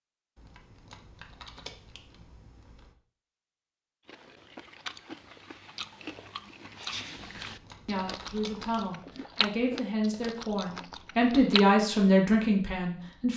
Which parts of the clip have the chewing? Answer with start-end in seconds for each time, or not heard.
4.0-11.8.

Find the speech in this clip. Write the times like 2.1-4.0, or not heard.
7.8-13.3.